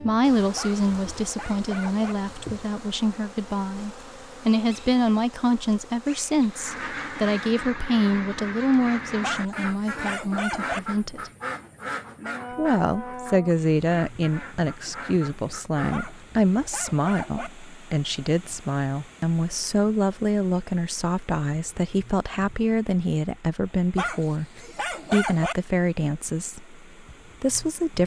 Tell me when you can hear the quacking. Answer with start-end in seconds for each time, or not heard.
6.5-16.1.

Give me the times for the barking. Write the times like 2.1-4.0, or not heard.
0.6-2.1, 9.2-10.8, 15.9-17.5, 23.9-25.6.